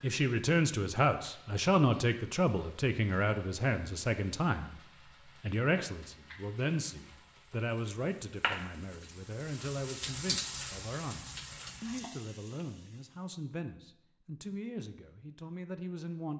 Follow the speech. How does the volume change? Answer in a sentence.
The loudness of the speech goes down.